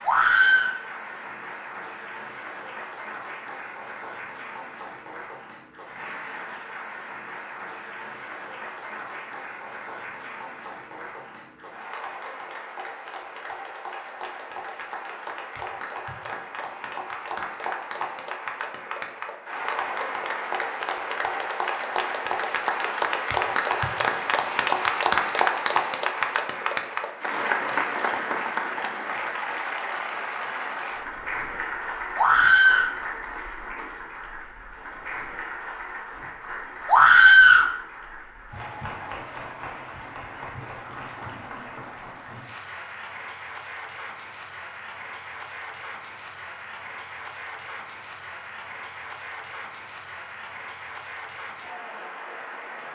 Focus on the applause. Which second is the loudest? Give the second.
25 s.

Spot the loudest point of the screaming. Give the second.
37 s.